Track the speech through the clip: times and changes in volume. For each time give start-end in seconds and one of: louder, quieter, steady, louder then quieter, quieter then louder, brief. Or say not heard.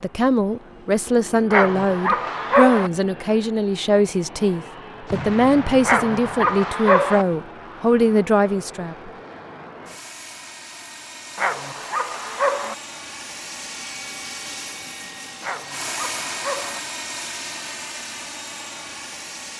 0.0-9.1 steady.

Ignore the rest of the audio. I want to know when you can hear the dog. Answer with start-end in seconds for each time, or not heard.
1.5-2.9, 5.8-7.2, 11.3-12.8, 15.4-16.8.